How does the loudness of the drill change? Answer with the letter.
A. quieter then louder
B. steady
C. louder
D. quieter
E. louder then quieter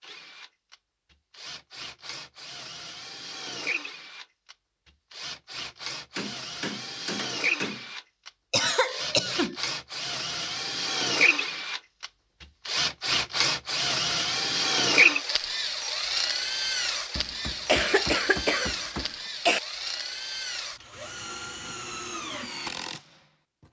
E.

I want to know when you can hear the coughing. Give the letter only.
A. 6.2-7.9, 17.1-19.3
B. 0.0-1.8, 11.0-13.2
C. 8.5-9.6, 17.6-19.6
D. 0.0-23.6
C.